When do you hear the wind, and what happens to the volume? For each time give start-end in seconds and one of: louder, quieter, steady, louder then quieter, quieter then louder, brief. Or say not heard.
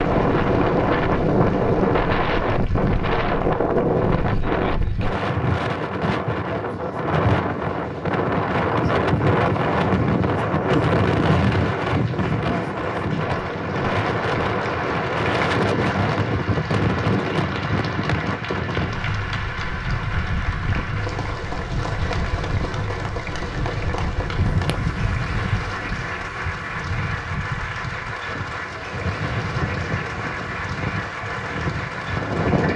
0.0-32.7 quieter.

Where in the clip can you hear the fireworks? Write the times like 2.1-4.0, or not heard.
not heard.